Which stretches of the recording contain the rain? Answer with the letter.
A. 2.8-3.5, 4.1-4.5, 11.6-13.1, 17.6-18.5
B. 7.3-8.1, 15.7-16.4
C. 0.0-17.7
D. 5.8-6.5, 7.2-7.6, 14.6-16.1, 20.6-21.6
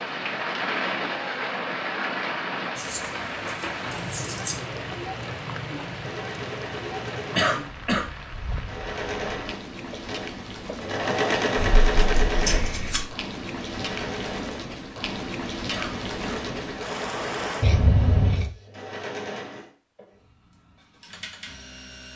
C.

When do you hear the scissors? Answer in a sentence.
The scissors can be heard from 2.8 to 3.5 s, from 4.1 to 4.5 s, from 11.6 to 13.1 s and from 17.6 to 18.5 s.